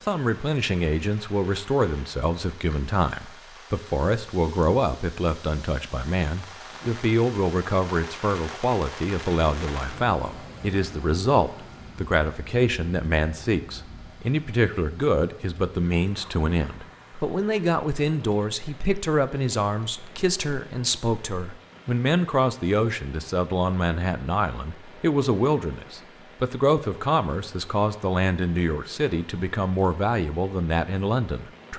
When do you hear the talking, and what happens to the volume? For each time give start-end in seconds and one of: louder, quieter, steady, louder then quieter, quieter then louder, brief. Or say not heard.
0.0-31.7 steady.